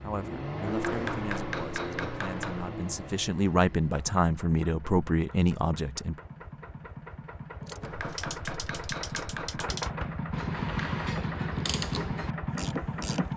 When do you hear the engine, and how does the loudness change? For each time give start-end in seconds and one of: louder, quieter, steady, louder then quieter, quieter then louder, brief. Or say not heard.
0.0-13.3 quieter then louder.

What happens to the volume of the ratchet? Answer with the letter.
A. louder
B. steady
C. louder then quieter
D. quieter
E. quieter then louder
A.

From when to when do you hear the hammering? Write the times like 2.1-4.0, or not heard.
0.7-2.7, 7.8-9.8.